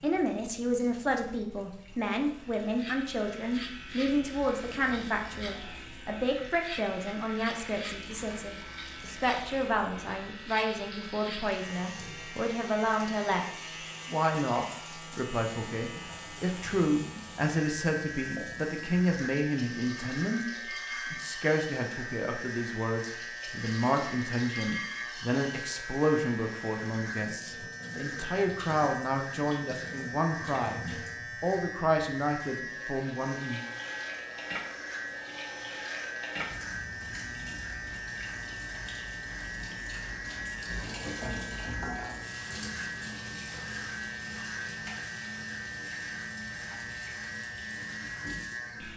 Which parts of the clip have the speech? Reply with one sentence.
You can hear the speech from 0.0 to 20.4 s, from 21.1 to 30.8 s and from 31.4 to 33.6 s.